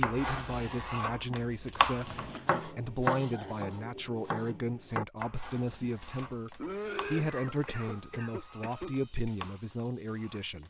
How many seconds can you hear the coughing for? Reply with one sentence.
The coughing can be heard for 3 seconds in total.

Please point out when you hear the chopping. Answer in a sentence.
The chopping can be heard from 0.0 to 10.6 s.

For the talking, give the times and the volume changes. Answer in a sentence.
The talking can be heard from 0.0 to 10.6 s, at a steady volume.